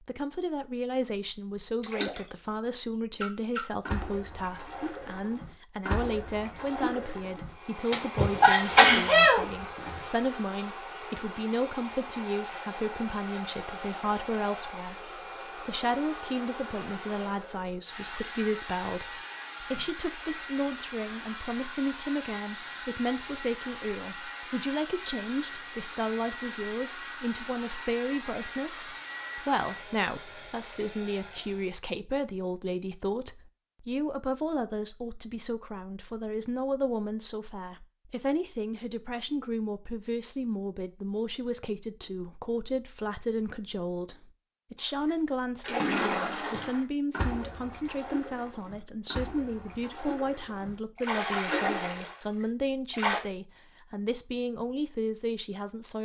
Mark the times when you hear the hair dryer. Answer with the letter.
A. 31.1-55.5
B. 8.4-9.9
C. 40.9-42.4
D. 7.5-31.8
D.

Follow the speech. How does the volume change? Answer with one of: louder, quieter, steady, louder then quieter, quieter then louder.
steady.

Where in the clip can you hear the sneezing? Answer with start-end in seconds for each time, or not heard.
8.4-9.9.